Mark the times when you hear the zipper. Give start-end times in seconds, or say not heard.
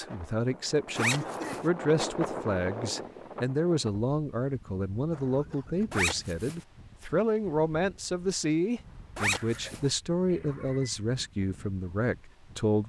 0.9-1.6, 5.9-6.5, 9.2-9.8.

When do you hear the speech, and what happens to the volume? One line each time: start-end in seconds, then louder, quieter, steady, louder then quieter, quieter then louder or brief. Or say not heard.
0.0-12.8 steady.